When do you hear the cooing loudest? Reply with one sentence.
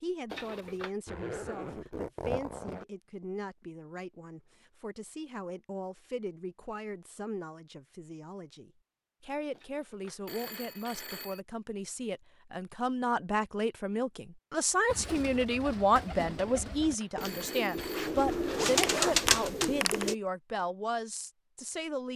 The loudest moment of the cooing is at 19 seconds.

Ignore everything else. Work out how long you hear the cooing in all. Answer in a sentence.
The cooing can be heard for 5 seconds in total.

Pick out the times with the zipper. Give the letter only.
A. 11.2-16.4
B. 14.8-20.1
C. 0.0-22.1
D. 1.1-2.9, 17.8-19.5
D.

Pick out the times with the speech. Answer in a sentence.
The speech can be heard from 0.0 to 22.1 s.